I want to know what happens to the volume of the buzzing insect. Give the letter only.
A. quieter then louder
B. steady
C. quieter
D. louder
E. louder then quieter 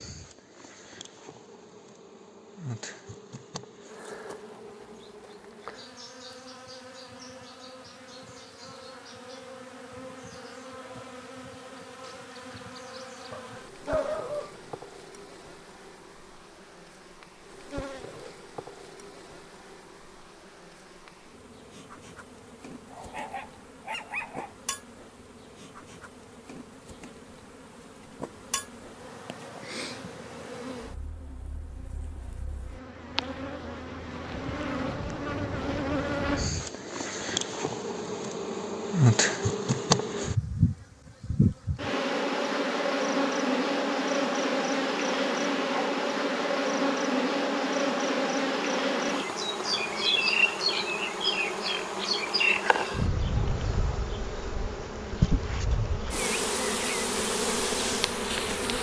D.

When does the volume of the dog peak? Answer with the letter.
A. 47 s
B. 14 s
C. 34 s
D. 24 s
B.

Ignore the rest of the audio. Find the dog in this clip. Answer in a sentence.
The dog can be heard from 13.3 to 14.8 s, from 22.9 to 24.6 s and from 45.7 to 46.5 s.